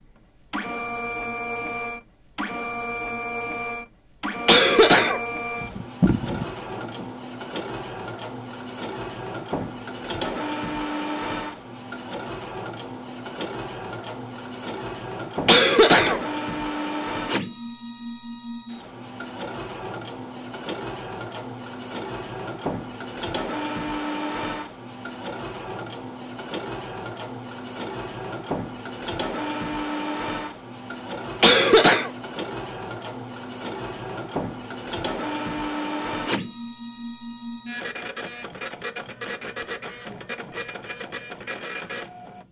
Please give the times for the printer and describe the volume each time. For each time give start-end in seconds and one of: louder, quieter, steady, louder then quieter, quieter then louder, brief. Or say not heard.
0.0-42.4 steady.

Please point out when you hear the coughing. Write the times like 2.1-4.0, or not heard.
4.5-7.0, 15.4-16.2, 31.4-32.1.